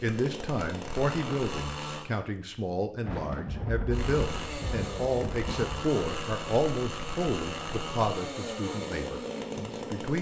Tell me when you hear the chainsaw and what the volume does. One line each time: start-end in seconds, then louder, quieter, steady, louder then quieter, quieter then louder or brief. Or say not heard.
0.0-2.0 brief
3.9-10.1 steady.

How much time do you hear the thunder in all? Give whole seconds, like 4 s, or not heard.
3 s.